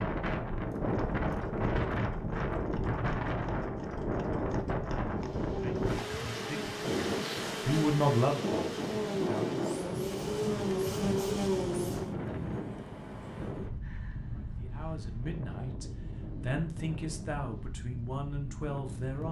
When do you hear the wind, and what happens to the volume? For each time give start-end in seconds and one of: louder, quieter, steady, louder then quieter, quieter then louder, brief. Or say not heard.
0.0-19.2 quieter.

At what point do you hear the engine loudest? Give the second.
11 s.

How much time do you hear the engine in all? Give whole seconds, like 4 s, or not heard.
7 s.